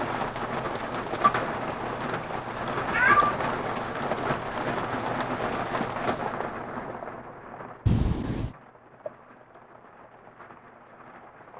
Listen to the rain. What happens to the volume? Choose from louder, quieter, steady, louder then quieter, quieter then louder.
quieter.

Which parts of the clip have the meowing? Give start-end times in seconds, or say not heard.
2.6-3.5, 7.8-8.6.